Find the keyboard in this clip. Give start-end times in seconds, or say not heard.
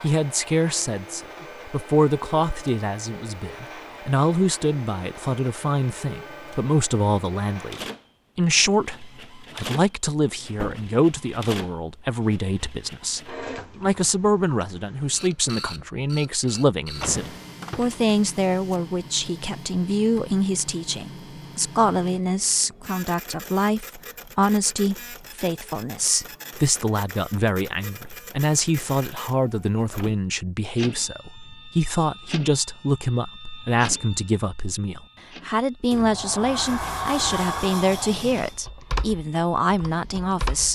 38.5-40.7.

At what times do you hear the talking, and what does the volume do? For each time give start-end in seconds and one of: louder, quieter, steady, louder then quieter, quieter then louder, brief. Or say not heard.
0.0-40.7 steady.